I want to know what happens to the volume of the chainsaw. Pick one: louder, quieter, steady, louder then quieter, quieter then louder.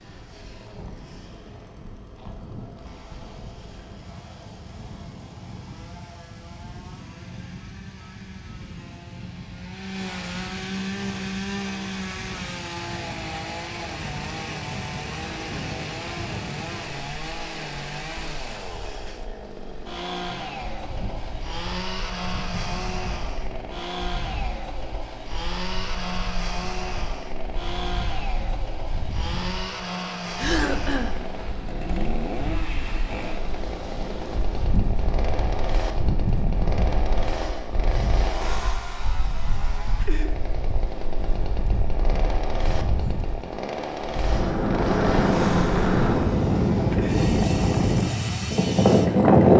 louder.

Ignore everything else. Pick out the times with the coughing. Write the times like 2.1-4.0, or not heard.
30.4-31.2.